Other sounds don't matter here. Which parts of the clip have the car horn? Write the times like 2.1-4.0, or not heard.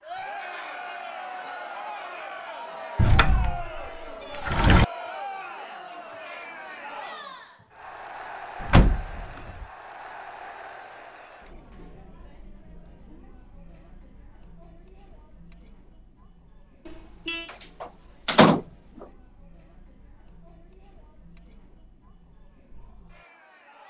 16.9-17.5.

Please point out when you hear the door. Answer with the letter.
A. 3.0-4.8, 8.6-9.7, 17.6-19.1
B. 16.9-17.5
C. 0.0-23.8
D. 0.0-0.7
A.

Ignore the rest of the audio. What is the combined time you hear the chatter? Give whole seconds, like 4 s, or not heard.
24 s.